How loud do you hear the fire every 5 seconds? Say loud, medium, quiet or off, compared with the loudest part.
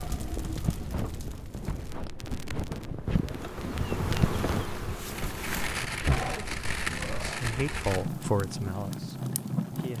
medium, loud.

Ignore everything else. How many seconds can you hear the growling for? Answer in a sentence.
The growling can be heard for 2 seconds in total.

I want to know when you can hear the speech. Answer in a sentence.
You can hear the speech from 7.2 to 9.9 s.